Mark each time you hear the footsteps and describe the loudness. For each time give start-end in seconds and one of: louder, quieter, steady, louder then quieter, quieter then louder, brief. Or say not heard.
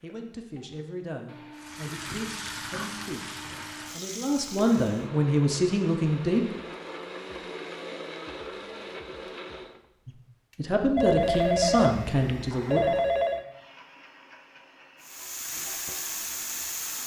not heard.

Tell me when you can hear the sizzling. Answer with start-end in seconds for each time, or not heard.
1.6-5.1, 15.0-17.0.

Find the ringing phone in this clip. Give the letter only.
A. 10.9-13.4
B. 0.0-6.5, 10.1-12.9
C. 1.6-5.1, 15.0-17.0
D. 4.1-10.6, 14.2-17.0
A.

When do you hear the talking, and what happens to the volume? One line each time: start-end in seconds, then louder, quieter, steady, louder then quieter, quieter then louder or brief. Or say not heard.
0.0-6.5 louder
10.1-12.9 brief.